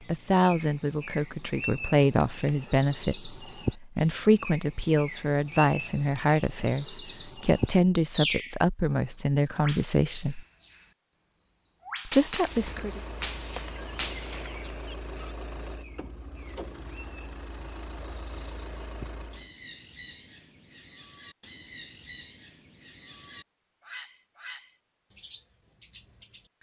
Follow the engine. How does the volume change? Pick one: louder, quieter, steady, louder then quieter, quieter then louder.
steady.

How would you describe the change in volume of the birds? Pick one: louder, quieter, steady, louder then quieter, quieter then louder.
quieter.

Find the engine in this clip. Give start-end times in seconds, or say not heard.
12.4-19.5.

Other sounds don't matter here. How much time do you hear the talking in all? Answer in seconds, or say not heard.
11 s.